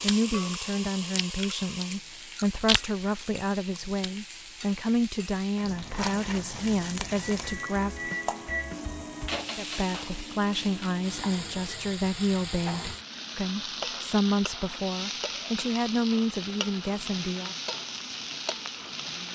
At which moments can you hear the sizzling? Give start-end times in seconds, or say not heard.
0.0-19.3.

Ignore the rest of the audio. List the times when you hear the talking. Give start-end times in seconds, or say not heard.
0.0-8.1, 9.6-17.6.